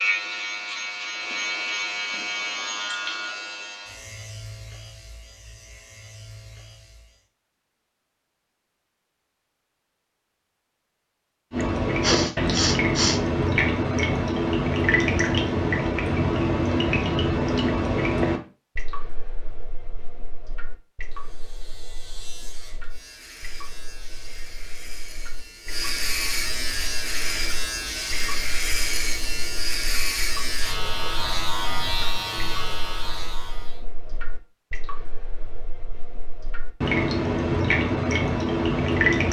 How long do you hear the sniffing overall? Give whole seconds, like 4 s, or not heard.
2 s.